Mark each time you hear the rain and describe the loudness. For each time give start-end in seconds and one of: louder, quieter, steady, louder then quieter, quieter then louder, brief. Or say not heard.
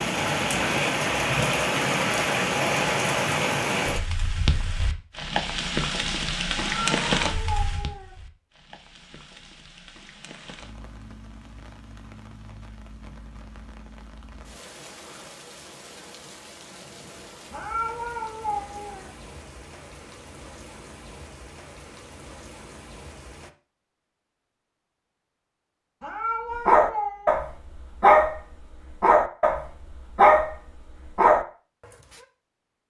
0.0-23.5 quieter.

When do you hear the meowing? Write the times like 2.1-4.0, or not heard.
6.5-8.2, 17.5-19.1, 26.0-27.4.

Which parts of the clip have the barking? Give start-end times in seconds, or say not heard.
26.5-31.4.